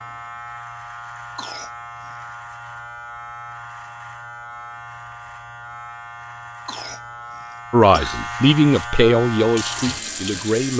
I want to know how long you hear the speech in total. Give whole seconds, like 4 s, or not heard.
3 s.